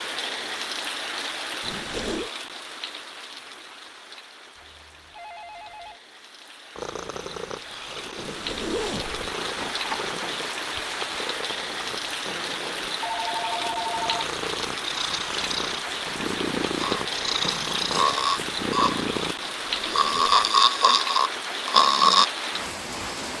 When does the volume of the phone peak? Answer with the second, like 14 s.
14 s.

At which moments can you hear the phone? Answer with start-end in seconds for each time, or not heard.
4.5-6.0, 13.0-14.2.